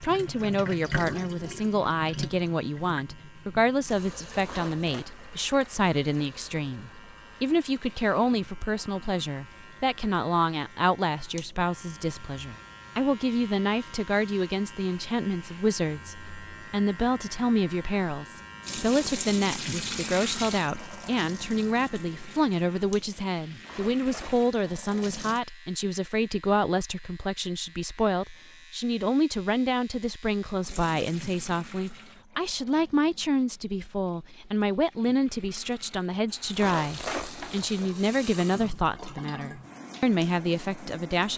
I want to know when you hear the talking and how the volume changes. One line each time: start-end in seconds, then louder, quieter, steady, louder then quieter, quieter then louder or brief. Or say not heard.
0.0-41.3 steady.